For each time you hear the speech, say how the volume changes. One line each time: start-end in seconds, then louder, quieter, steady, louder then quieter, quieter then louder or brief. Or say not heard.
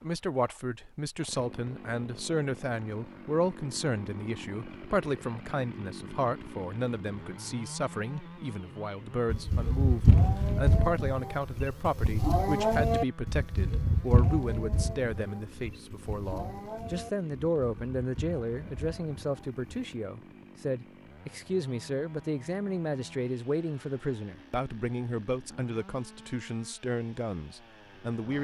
0.0-28.3 steady.